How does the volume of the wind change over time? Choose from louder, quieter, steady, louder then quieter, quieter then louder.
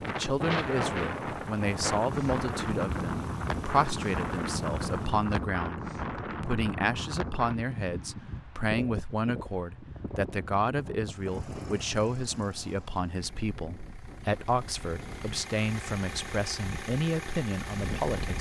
quieter.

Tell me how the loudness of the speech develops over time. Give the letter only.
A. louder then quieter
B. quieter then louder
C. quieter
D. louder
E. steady
E.